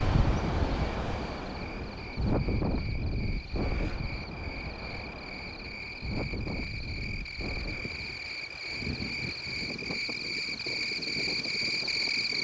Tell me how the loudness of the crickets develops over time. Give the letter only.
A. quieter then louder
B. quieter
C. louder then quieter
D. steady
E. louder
E.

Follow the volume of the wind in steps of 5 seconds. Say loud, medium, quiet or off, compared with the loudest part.
loud, medium, medium.